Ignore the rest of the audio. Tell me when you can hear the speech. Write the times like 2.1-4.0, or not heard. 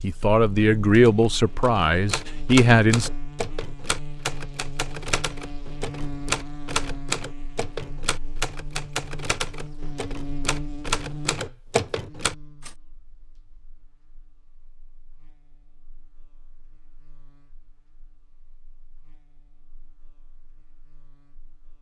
0.0-3.1.